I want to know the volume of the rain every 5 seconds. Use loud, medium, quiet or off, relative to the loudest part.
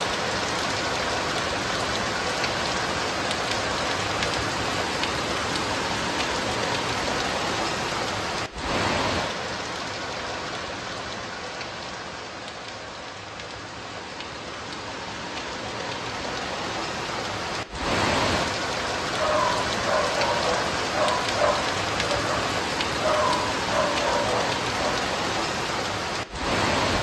loud, loud, medium, loud, loud, loud.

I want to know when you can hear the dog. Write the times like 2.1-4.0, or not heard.
19.1-25.1.